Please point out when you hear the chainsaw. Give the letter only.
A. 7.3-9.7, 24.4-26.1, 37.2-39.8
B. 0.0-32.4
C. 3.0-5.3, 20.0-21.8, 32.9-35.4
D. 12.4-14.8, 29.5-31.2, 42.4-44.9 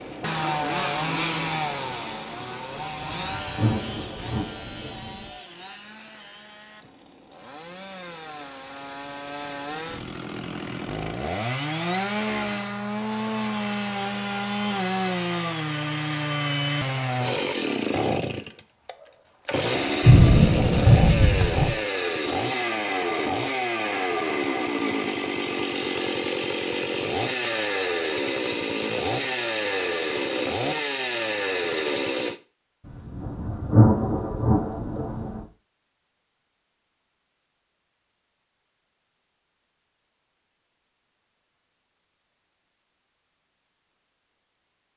B.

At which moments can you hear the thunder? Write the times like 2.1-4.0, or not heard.
3.0-5.3, 20.0-21.8, 32.9-35.4.